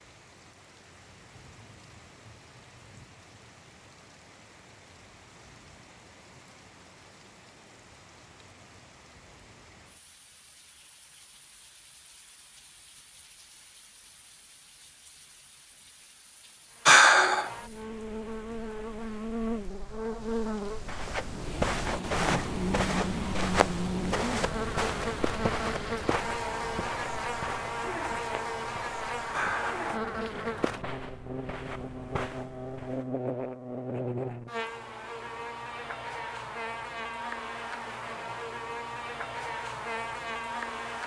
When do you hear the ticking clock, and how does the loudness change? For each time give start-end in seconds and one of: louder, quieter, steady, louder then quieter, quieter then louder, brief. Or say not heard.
not heard.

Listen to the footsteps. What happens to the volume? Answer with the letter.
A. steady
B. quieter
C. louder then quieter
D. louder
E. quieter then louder
B.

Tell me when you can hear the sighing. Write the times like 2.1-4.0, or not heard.
16.9-17.5, 29.3-30.3.